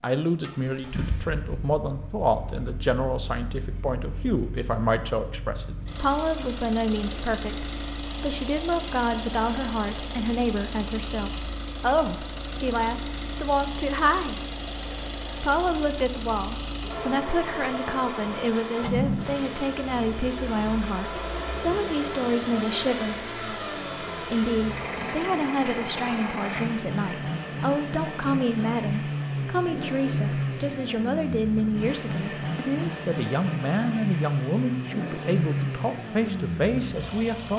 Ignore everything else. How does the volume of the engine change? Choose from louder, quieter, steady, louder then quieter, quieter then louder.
louder.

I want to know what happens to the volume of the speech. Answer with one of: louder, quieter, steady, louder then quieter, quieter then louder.
steady.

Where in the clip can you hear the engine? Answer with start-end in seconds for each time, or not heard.
0.4-37.5.